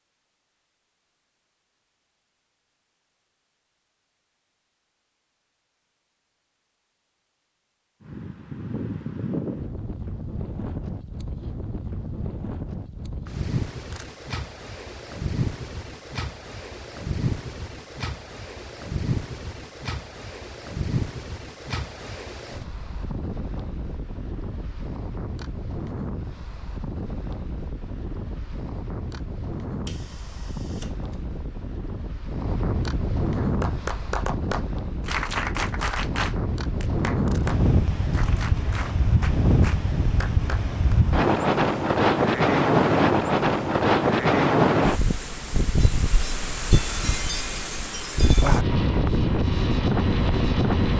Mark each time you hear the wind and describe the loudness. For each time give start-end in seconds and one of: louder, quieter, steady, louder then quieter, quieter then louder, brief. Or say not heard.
8.0-50.9 louder.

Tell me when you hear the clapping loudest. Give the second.
35 s.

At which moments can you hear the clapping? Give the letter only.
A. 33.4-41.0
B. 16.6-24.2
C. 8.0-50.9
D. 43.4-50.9
A.